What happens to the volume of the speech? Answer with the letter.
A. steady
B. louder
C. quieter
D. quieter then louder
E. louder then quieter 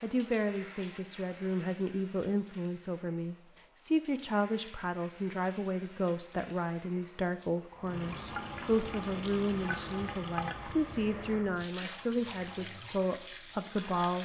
A.